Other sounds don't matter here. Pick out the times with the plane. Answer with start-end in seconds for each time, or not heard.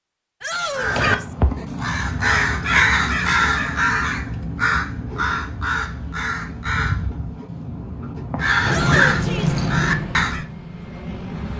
8.7-11.5.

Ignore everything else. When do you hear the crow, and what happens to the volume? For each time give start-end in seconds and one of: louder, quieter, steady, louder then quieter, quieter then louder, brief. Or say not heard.
0.8-10.4 quieter then louder.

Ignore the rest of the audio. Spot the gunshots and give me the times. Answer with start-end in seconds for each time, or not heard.
not heard.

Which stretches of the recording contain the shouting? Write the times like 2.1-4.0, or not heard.
0.4-1.4, 8.7-9.6.